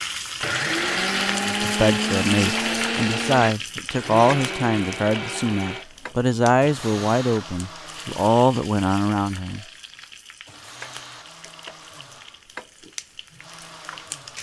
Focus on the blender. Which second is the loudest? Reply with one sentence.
The loudest moment of the blender is at 1 second.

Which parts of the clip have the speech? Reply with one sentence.
The speech can be heard from 1.4 to 9.7 s.